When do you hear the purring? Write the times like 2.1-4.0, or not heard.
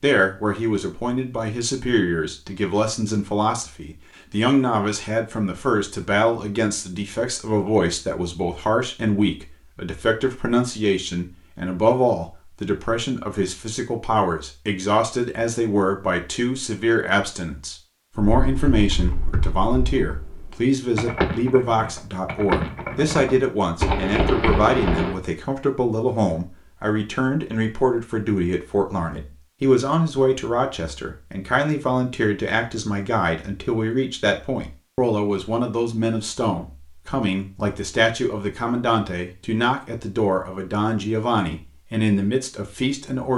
not heard.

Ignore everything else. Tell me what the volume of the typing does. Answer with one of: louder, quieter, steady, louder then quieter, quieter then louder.
louder.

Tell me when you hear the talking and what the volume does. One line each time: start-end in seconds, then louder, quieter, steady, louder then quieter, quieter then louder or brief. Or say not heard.
0.0-43.3 steady.